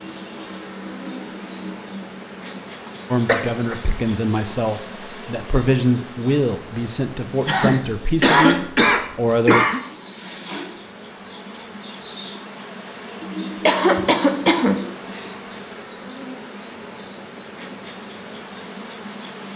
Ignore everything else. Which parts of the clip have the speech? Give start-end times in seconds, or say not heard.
3.1-9.6.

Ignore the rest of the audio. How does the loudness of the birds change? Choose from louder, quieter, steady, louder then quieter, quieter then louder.
louder then quieter.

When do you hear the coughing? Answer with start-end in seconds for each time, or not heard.
3.2-3.8, 7.5-9.8, 13.7-15.2.